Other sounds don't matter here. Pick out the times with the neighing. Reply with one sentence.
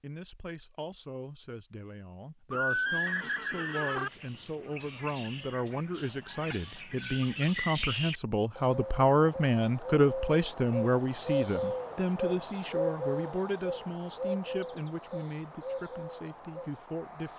The neighing can be heard from 2.5 to 4.1 s.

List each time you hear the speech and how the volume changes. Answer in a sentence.
You can hear the speech from 0.0 to 17.3 s, getting louder then quieter.